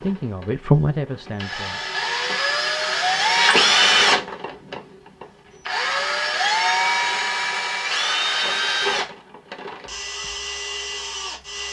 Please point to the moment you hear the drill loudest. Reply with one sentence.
The loudest moment of the drill is at 4 seconds.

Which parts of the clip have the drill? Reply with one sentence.
The drill can be heard from 0.0 to 0.5 s and from 1.4 to 11.6 s.